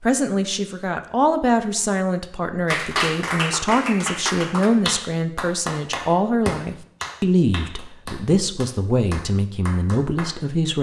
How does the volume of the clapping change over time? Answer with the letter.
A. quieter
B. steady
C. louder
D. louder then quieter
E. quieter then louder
A.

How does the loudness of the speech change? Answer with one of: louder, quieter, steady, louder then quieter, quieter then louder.
steady.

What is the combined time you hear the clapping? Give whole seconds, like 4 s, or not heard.
8 s.